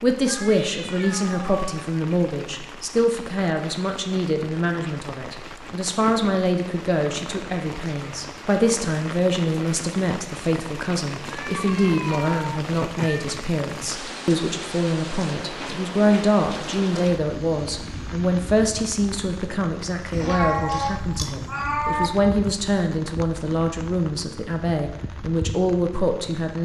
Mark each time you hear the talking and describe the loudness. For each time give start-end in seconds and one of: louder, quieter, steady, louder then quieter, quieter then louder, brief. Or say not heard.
0.0-26.6 steady.